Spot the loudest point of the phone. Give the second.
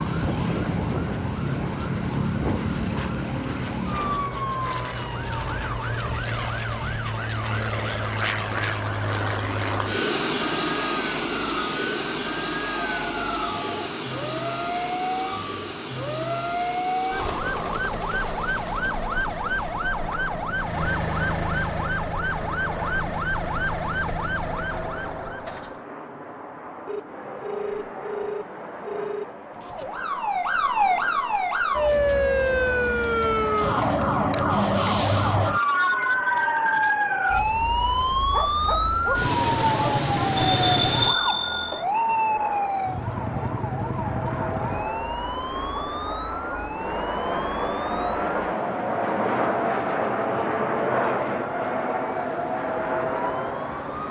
41 s.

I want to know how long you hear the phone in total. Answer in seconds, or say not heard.
5 s.